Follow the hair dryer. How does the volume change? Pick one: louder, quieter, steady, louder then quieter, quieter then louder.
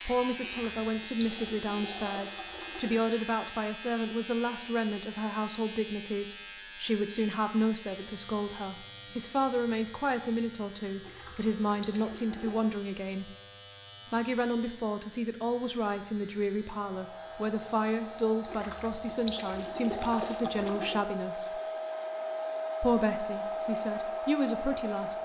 louder.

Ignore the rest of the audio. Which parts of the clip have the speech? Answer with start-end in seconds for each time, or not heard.
0.1-13.3, 14.1-21.6, 22.8-25.2.